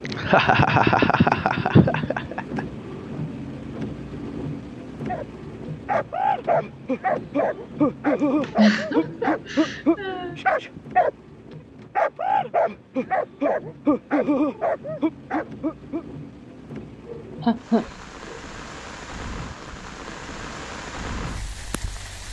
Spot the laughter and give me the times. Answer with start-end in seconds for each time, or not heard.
0.1-2.6, 8.2-10.3, 17.1-18.4.